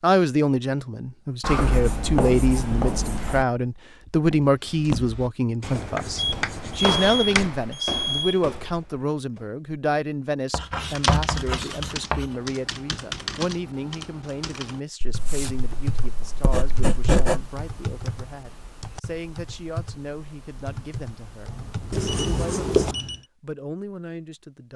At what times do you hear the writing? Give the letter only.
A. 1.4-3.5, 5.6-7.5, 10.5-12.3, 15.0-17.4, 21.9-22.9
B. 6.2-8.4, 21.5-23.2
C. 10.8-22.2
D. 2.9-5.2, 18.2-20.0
A.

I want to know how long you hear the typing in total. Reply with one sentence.
You can hear the typing for 11 seconds altogether.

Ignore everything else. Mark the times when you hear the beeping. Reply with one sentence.
The beeping can be heard from 6.2 to 8.4 s and from 21.5 to 23.2 s.